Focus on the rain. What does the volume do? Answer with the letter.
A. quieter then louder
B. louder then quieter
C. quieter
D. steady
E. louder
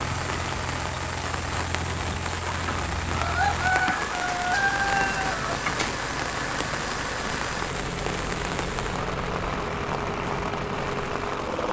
D.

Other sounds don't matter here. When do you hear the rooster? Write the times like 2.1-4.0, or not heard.
2.5-6.0.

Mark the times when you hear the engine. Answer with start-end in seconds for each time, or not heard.
0.0-11.6.